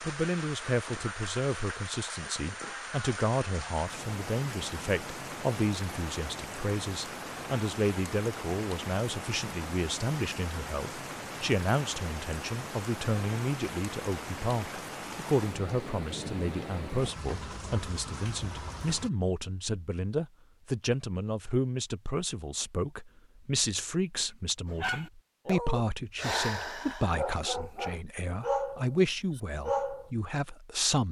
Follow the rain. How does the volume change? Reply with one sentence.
The loudness of the rain stays about the same.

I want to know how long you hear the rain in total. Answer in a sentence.
The rain can be heard for 19 seconds in total.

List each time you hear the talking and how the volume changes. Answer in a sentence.
The talking can be heard from 0.0 to 31.0 s, at a steady volume.